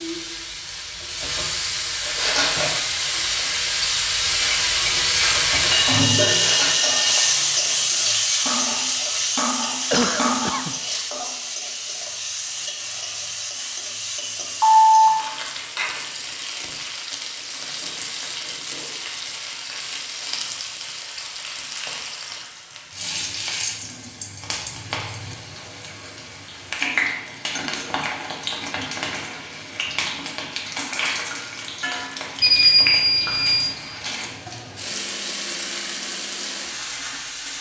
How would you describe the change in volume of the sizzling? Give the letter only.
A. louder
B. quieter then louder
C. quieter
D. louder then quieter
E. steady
C.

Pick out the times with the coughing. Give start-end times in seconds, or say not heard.
9.9-10.8.